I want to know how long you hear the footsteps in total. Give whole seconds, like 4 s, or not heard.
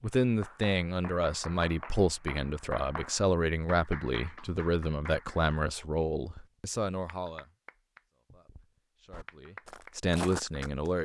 2 s.